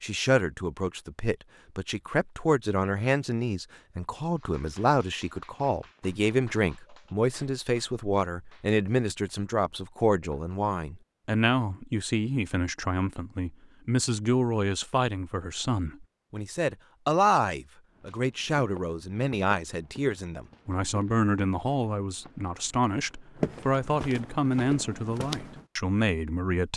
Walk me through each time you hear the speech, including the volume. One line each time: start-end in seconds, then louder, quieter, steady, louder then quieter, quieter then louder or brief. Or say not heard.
0.0-26.7 steady.